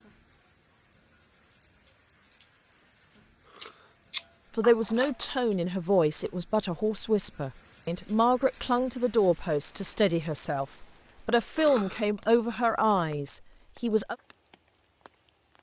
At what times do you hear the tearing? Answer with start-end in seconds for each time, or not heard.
not heard.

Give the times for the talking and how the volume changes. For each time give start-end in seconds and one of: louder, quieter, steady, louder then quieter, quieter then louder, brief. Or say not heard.
4.5-14.2 steady.